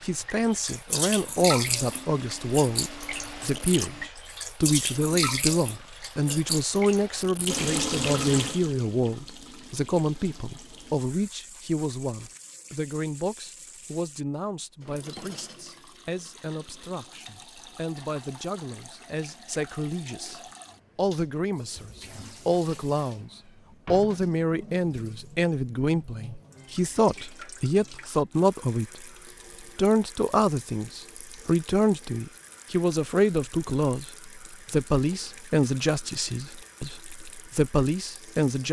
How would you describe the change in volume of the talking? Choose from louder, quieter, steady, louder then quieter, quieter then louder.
quieter then louder.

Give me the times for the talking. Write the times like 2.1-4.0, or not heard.
0.0-29.1, 29.8-38.6.